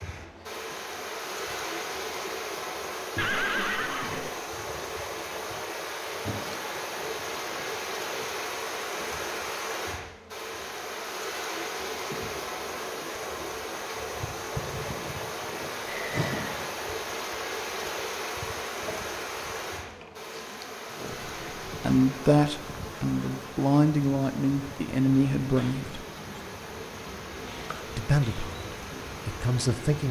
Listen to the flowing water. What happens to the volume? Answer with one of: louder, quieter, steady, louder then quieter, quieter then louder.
quieter.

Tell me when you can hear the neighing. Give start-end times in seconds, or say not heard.
3.1-4.3, 15.8-16.6.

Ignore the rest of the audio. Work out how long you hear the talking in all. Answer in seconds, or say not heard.
7 s.